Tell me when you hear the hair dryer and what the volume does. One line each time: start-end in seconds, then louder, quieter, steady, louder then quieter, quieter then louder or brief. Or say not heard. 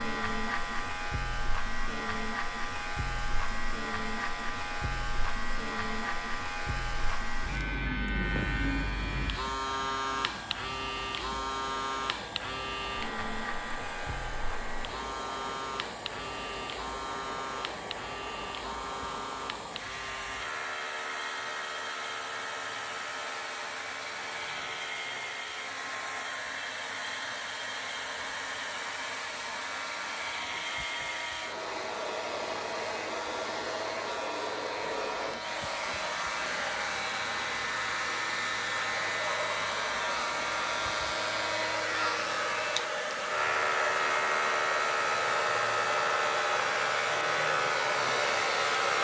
0.0-49.0 louder.